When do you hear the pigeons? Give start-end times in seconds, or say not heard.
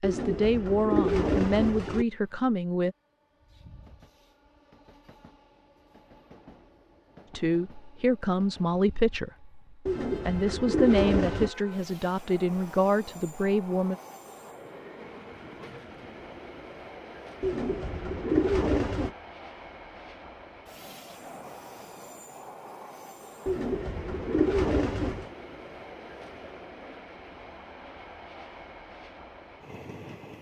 0.0-2.0, 9.8-11.5, 17.4-19.1, 23.4-25.2.